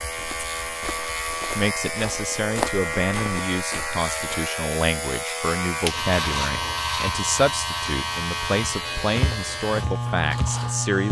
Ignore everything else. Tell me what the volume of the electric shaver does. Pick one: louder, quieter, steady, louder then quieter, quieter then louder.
steady.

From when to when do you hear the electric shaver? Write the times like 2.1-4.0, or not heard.
0.0-11.0.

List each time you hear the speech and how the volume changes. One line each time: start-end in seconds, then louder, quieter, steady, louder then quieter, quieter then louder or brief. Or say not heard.
1.6-11.0 steady.